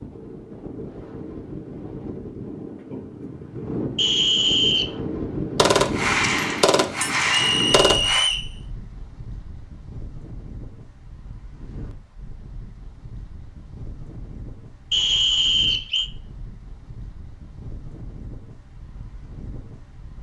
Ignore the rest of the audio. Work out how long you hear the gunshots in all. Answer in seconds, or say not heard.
3 s.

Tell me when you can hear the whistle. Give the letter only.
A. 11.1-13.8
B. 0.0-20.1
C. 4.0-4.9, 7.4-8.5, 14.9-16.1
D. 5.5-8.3
C.